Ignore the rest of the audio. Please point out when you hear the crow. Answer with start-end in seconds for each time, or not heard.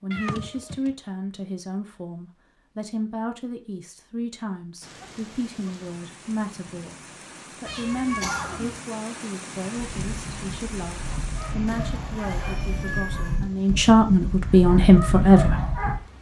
not heard.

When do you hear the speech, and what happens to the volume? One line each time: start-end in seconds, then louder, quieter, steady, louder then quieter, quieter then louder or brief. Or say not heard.
0.0-15.7 louder.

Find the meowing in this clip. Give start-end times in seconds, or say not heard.
0.1-0.9, 7.7-8.8, 11.7-13.4.